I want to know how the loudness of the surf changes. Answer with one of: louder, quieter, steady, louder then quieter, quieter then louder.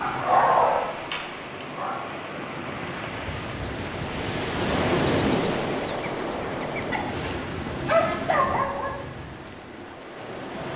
louder then quieter.